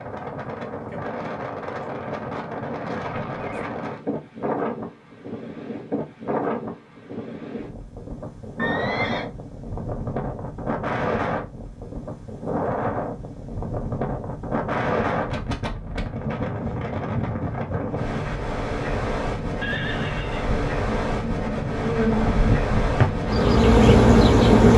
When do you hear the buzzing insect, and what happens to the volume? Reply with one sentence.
You can hear the buzzing insect from 20.4 to 24.7 s, getting louder.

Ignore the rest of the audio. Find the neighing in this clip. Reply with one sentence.
You can hear the neighing from 3.0 to 3.7 s, from 8.6 to 9.2 s and from 19.6 to 20.5 s.